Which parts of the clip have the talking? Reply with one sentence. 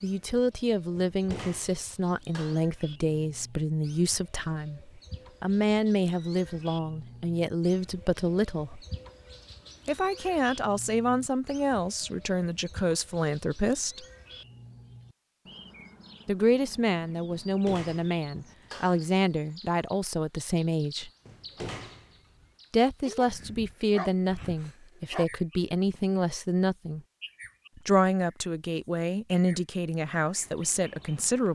The talking can be heard from 0.0 to 8.8 s, from 9.8 to 14.1 s, from 16.2 to 21.1 s, from 22.7 to 27.0 s and from 27.8 to 31.5 s.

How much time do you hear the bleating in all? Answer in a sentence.
The bleating can't be heard in this clip.